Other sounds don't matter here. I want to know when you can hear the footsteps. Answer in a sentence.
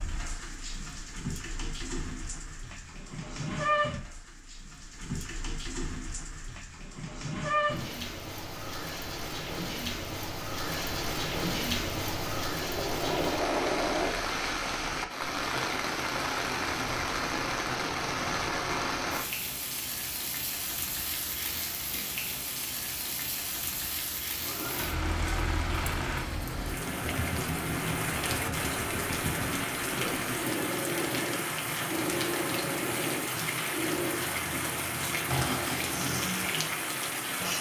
The footsteps can't be heard in this clip.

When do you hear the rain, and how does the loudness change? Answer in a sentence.
The rain can be heard from 0.0 to 37.5 s, at a steady volume.